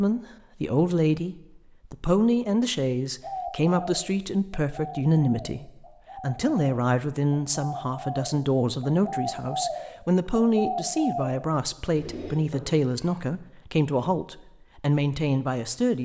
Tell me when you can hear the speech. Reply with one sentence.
You can hear the speech from 0.0 to 16.0 s.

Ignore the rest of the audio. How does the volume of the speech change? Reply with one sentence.
The volume of the speech stays about the same.